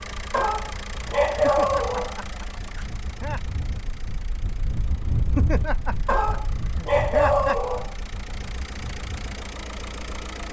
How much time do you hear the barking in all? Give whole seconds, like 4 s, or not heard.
4 s.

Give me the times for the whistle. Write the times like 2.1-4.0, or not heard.
not heard.